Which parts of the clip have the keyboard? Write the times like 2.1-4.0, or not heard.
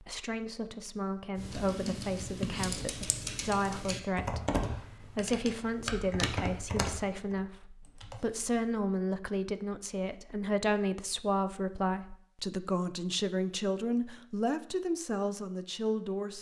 1.4-8.6.